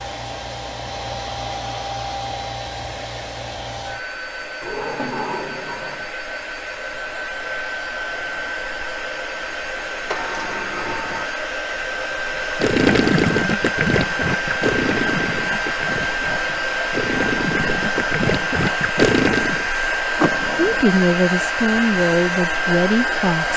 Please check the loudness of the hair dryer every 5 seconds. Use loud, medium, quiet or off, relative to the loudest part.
medium, medium, loud, loud, loud.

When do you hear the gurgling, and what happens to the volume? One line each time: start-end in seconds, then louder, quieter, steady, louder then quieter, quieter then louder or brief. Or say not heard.
12.3-19.6 quieter then louder.